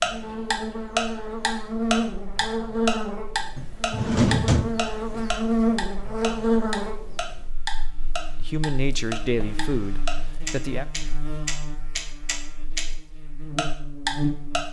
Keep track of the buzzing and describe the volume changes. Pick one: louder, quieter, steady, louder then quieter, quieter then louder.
quieter.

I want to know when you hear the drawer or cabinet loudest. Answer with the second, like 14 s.
4 s.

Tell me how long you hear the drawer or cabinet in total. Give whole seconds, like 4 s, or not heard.
3 s.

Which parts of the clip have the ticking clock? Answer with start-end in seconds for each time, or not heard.
0.0-12.8, 13.6-14.6.